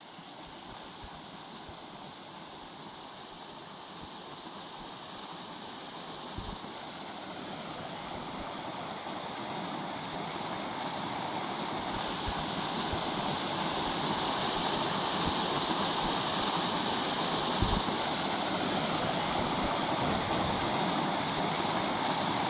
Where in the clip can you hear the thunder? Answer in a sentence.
The thunder can be heard from 20.0 to 20.8 s.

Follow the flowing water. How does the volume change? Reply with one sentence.
The volume of the flowing water goes up.